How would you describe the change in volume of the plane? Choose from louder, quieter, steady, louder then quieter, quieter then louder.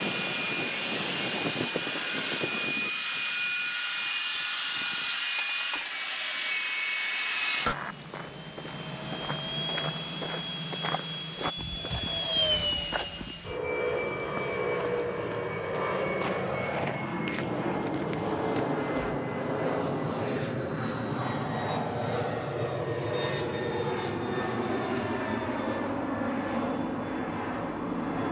steady.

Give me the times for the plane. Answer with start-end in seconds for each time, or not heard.
0.0-28.2.